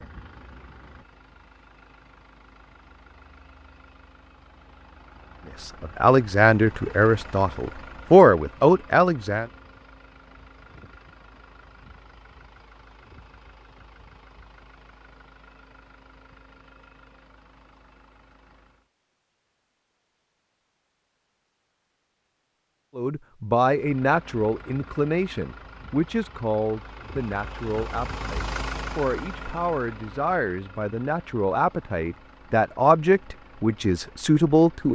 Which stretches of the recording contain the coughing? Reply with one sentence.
You can't hear the coughing here.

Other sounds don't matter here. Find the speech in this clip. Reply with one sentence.
You can hear the speech from 5.6 to 9.4 s and from 22.9 to 34.9 s.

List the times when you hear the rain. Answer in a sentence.
You can't hear the rain here.